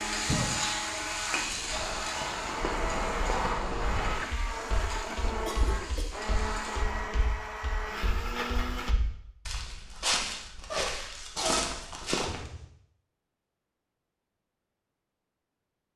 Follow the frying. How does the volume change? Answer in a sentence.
The volume of the frying goes down.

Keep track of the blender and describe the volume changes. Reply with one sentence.
The loudness of the blender stays about the same.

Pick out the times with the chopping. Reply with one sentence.
You can't hear the chopping here.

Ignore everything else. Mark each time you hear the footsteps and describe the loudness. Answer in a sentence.
You can hear the footsteps from 1.4 to 12.4 s, getting quieter then louder.